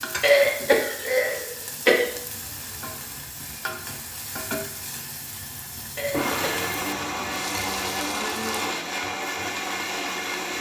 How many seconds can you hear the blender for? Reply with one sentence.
You can hear the blender for 8 seconds altogether.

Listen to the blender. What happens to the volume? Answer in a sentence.
The volume of the blender goes up.